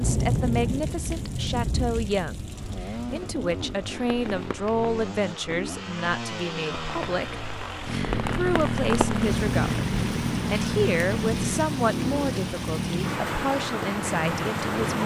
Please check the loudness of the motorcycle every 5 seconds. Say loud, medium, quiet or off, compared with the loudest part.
medium, loud, loud.